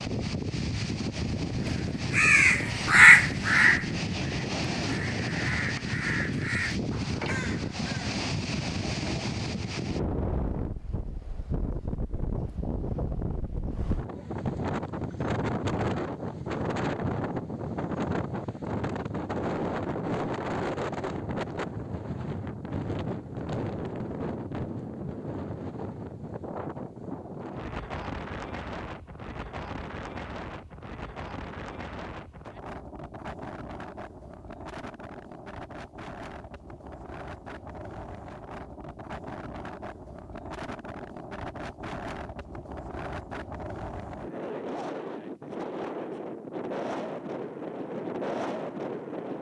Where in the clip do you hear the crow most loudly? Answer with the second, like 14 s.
3 s.